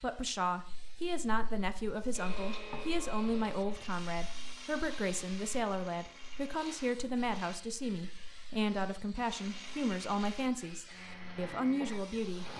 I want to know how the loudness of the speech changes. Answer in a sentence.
The volume of the speech stays about the same.